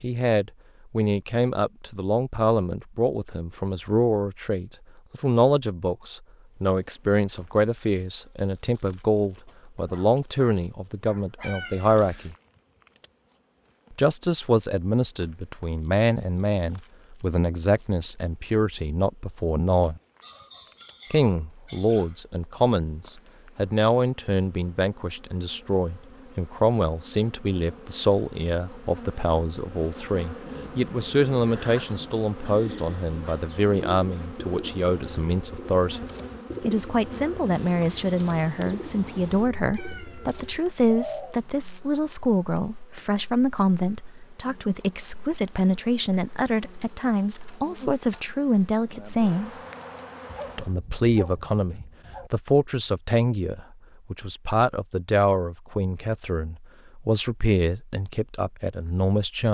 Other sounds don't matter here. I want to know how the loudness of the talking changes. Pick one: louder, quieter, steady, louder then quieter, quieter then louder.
steady.